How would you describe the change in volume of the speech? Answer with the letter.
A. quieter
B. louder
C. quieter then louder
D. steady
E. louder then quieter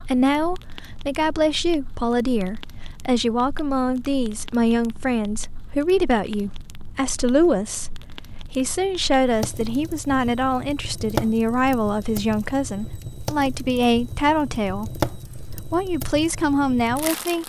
D.